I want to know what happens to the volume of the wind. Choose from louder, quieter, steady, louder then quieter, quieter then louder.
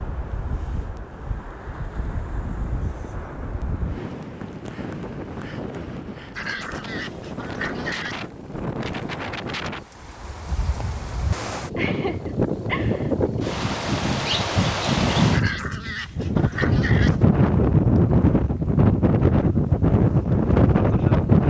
louder.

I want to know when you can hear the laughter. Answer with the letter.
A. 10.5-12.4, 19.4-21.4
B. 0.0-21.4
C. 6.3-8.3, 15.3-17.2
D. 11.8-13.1
D.